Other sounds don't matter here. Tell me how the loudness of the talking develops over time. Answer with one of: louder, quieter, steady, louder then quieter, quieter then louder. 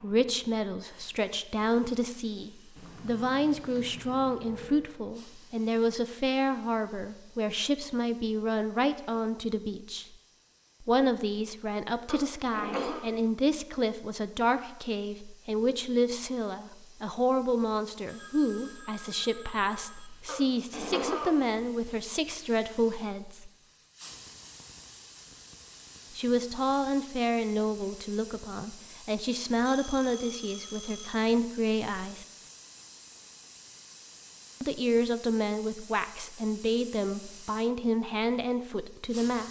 steady.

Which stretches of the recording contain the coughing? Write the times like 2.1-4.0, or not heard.
12.1-13.1, 20.2-21.4.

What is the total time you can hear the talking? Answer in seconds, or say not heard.
34 s.